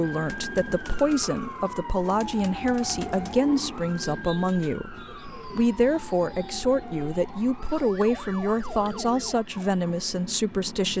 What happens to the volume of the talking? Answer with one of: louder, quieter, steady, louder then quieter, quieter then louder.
steady.